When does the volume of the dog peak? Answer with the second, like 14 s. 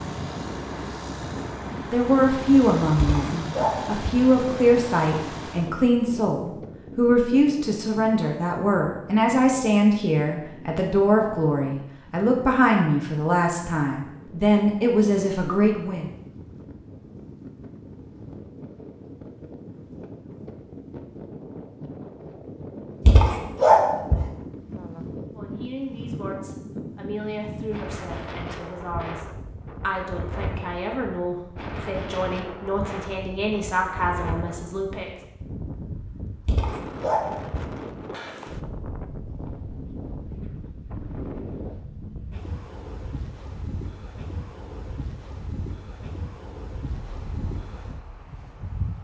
24 s.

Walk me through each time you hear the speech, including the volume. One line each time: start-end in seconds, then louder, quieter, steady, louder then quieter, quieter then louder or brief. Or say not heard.
1.9-16.1 steady
25.3-35.1 louder.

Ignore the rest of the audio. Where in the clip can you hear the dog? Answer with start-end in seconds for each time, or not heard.
3.0-4.2, 23.1-24.2, 36.5-37.6.